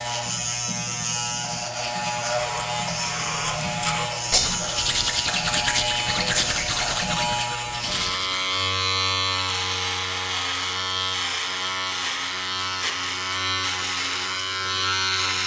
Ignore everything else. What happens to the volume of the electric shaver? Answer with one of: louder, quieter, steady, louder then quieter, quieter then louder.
steady.